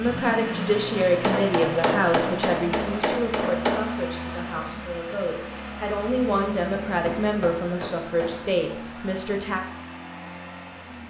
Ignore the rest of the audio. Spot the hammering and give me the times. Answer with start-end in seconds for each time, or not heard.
1.2-3.9, 6.9-8.5.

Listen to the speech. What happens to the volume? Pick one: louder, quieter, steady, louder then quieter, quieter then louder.
quieter then louder.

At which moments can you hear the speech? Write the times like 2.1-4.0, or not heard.
0.0-9.6.